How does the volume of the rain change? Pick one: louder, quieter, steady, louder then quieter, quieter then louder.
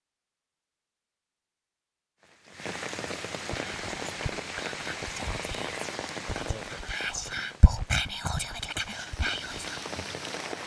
quieter then louder.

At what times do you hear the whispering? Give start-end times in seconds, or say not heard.
3.5-9.8.